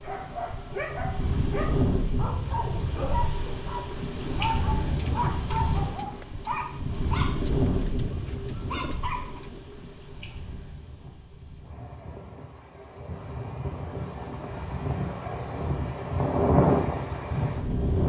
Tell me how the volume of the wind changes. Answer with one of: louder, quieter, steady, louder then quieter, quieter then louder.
quieter then louder.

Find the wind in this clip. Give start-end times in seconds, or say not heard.
0.0-18.0.